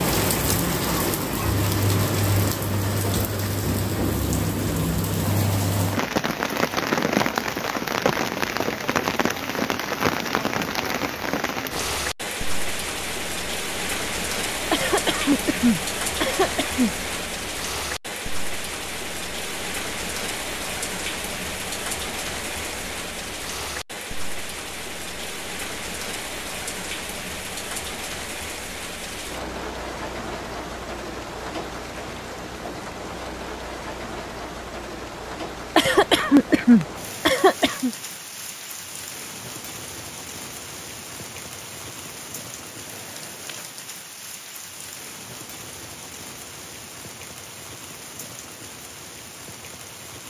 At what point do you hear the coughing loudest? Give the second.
37 s.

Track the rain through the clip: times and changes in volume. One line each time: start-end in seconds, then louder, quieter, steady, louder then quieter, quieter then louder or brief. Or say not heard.
0.0-50.2 quieter.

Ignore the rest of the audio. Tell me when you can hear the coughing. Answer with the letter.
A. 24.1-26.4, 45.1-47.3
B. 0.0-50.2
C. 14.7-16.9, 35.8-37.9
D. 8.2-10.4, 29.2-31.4
C.